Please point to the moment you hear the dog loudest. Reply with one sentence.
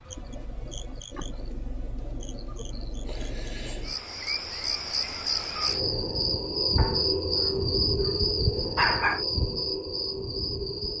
The loudest moment of the dog is at 9 seconds.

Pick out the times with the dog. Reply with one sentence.
The dog can be heard from 6.8 to 9.2 s.